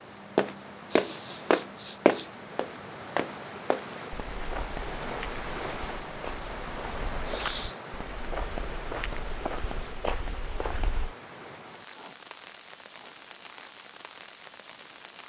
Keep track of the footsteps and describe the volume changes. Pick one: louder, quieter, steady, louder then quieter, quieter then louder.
quieter.